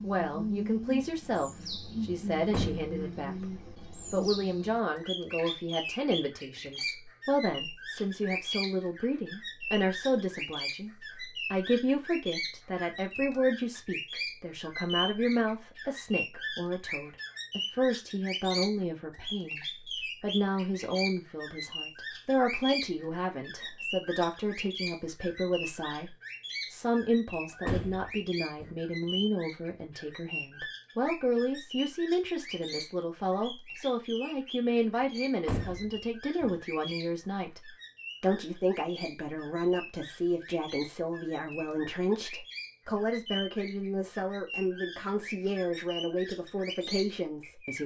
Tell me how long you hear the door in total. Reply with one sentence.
The door can be heard for 3 seconds in total.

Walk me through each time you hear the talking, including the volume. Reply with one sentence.
The talking can be heard from 0.0 to 47.8 s, at a steady volume.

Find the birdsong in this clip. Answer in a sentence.
You can hear the birdsong from 0.0 to 47.8 s.